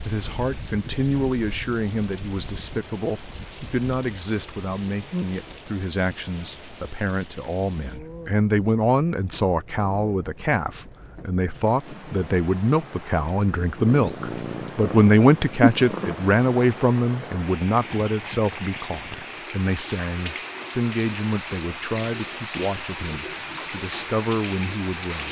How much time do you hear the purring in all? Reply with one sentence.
The purring can be heard for 2 seconds in total.